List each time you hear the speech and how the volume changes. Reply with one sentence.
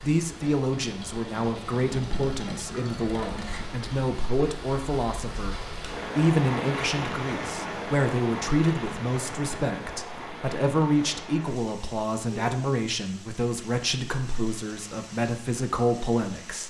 You can hear the speech from 0.0 to 16.6 s, at a steady volume.